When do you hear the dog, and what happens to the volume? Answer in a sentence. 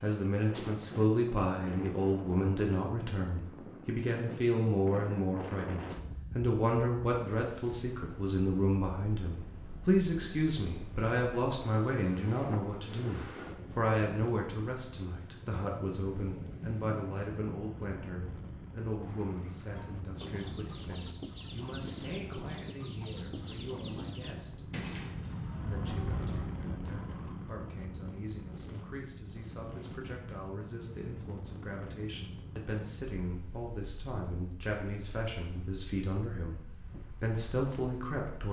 You can't hear the dog here.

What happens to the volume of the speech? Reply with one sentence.
The volume of the speech goes down, then up.